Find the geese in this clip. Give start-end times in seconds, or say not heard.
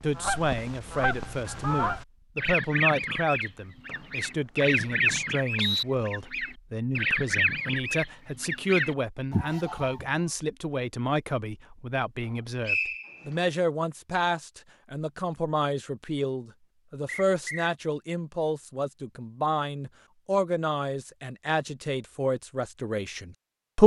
0.1-10.1.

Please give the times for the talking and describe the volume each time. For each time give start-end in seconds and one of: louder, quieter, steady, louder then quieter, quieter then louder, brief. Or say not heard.
0.0-23.8 steady.